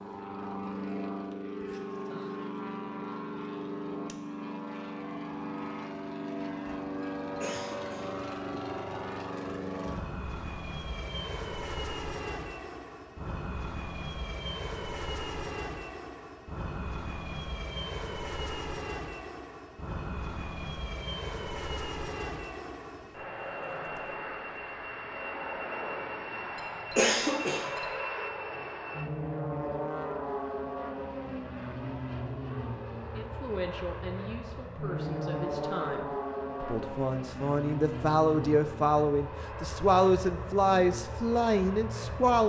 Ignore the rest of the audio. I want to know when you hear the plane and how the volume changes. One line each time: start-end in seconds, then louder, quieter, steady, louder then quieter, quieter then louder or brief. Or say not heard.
0.0-42.4 steady.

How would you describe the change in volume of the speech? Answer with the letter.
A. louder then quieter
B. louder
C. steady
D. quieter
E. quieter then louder
B.